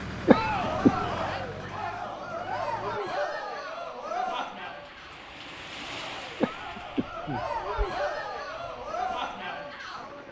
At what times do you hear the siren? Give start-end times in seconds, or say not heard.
not heard.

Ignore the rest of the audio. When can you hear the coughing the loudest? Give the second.
1 s.